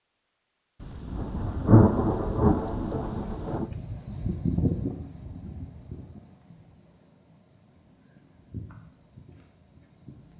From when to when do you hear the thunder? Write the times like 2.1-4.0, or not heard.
0.8-3.7.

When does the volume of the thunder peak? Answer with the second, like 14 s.
2 s.